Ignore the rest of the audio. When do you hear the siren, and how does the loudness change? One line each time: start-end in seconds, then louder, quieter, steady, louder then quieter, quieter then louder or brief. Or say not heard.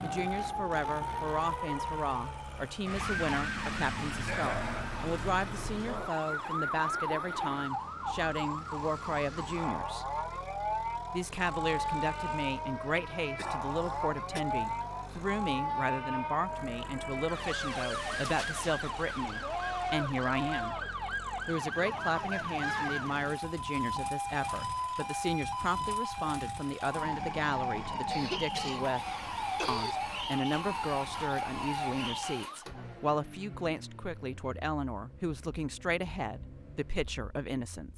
0.0-32.6 steady.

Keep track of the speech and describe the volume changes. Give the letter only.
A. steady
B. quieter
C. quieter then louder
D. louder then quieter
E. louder
A.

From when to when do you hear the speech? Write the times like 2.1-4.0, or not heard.
0.0-10.1, 11.1-20.8, 21.4-29.0, 29.6-37.9.